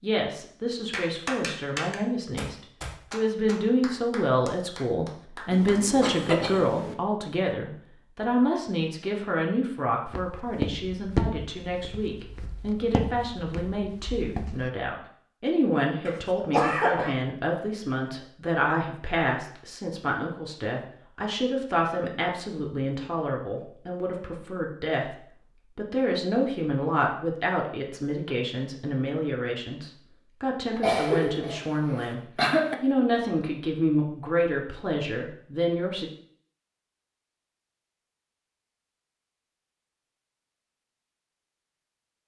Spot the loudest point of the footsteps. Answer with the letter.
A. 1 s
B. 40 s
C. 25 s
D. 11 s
D.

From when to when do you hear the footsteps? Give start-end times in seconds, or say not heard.
10.1-14.7.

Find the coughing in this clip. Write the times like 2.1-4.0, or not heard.
5.5-7.0, 16.1-17.1, 30.8-32.8.